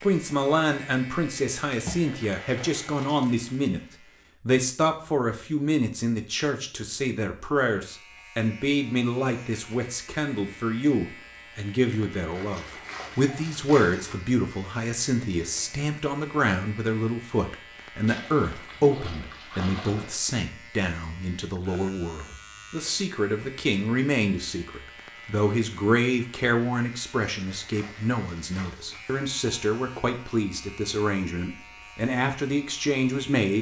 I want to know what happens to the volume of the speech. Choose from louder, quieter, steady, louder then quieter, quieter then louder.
steady.